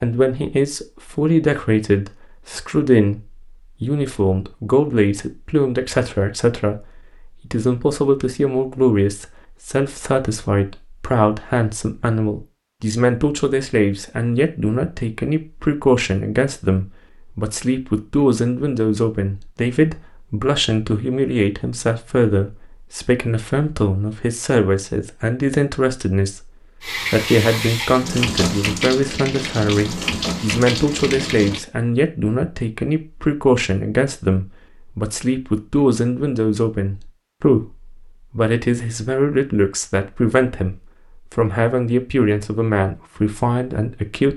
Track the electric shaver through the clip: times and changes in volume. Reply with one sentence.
The electric shaver can't be heard in this clip.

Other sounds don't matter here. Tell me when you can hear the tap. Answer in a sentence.
You can hear the tap from 26.8 to 31.6 s.